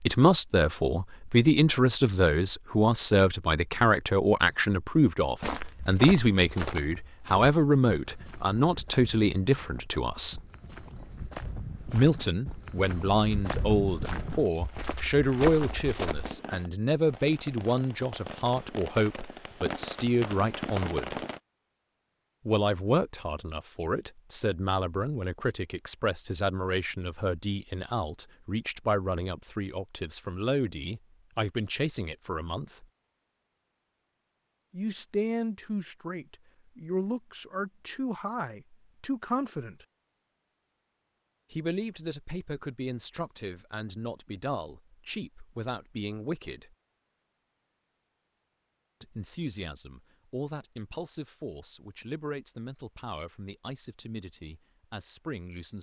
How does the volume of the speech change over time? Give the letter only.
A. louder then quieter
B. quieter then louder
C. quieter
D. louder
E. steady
C.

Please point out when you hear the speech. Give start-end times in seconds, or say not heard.
0.0-10.4, 11.9-21.2, 22.4-32.9, 34.7-39.9, 41.5-46.8, 49.0-55.7.